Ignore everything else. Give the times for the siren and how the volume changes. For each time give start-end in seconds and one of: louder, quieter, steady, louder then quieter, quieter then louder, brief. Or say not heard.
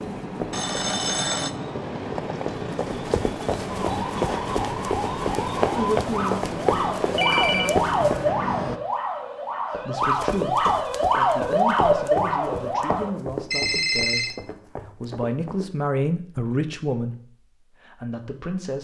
3.7-13.1 louder.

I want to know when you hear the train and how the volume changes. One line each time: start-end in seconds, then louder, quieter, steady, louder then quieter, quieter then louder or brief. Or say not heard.
0.0-8.8 steady.